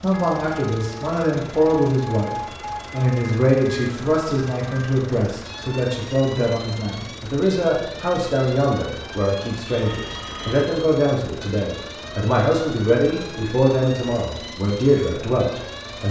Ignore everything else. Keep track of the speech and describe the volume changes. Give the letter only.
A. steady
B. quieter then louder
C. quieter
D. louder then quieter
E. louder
A.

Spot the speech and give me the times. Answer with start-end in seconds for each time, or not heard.
0.0-16.0.